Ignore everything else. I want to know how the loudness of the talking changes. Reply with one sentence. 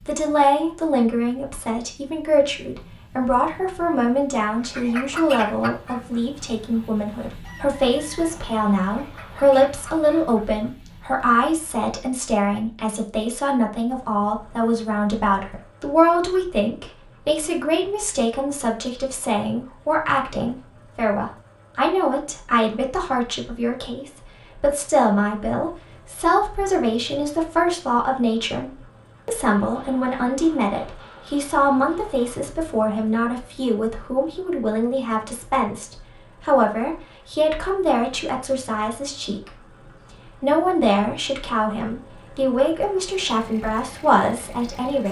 The loudness of the talking stays about the same.